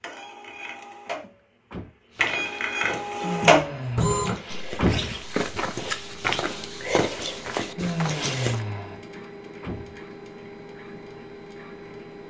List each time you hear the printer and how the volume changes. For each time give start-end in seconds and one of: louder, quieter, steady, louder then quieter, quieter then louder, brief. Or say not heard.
0.0-12.2 louder then quieter.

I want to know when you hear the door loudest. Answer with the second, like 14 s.
5 s.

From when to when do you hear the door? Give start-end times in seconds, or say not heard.
1.2-1.9, 4.3-5.2, 9.2-10.0.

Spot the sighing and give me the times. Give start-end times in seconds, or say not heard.
3.2-4.0, 7.8-9.0.